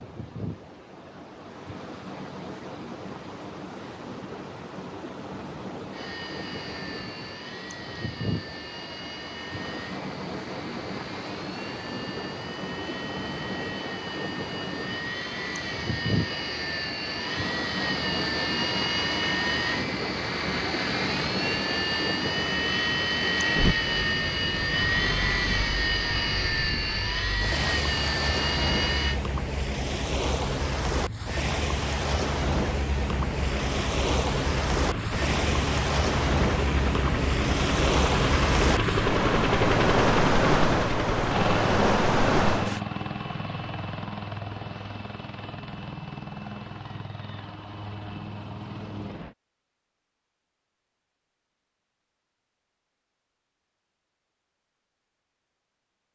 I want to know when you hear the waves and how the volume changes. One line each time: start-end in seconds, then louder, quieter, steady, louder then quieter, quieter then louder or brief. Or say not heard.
0.0-42.8 louder.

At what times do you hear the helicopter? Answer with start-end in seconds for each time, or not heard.
5.9-29.2, 33.0-49.4.